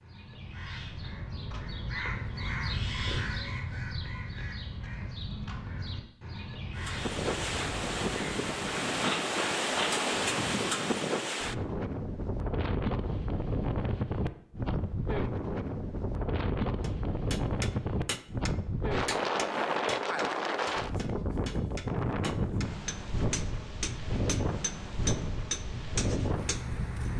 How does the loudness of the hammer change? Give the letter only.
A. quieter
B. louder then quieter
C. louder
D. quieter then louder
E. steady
D.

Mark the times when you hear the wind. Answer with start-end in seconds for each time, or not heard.
6.8-27.1.